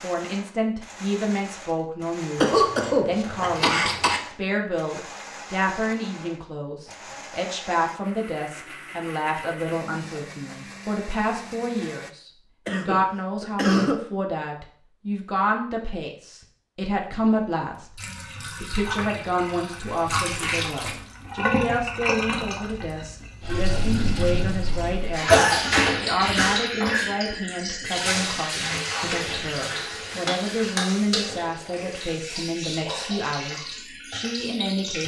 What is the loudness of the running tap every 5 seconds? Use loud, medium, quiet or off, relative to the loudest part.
off, off, off, medium, loud, loud, medium.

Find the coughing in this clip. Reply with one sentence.
The coughing can be heard from 2.4 to 4.2 s, from 12.7 to 13.9 s and from 25.3 to 26.6 s.